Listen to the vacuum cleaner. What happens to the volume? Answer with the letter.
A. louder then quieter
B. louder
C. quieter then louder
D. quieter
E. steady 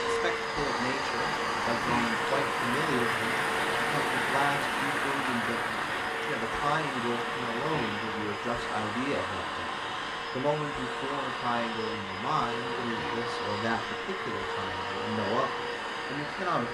E.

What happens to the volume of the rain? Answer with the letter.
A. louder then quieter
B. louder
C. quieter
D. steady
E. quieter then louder
C.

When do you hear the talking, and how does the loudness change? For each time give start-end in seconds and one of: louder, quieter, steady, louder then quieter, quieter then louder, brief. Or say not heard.
0.0-16.6 steady.